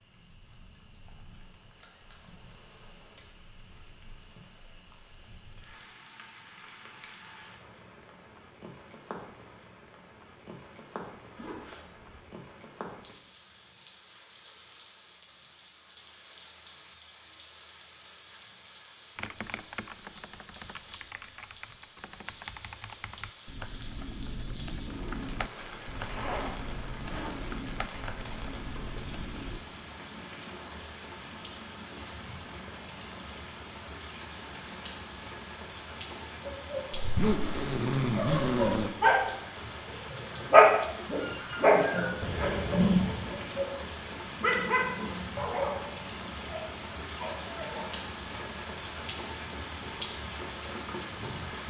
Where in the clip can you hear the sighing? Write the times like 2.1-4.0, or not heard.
not heard.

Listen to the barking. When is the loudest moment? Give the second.
41 s.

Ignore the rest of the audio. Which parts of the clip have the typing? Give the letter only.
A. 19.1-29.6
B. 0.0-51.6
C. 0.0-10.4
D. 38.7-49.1
A.